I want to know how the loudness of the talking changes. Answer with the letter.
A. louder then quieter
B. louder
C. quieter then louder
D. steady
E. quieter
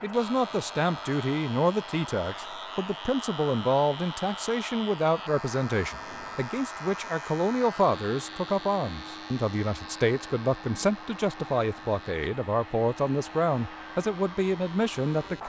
D.